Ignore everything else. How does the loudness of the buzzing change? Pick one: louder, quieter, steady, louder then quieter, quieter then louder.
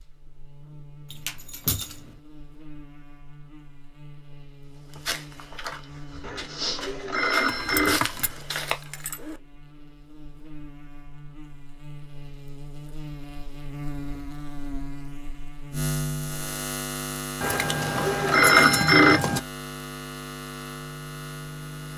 louder.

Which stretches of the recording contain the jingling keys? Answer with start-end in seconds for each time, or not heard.
1.1-2.1, 7.4-9.4, 17.4-19.4.